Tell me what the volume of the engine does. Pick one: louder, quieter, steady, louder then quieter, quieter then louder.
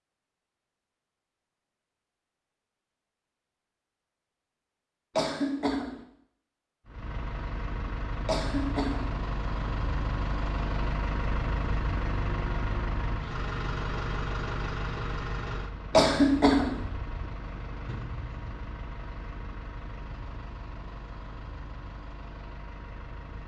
quieter.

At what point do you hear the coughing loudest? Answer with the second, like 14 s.
16 s.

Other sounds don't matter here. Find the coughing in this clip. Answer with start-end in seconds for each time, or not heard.
5.2-6.0, 8.2-9.2, 15.9-16.8.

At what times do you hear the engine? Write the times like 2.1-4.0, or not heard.
6.8-23.4.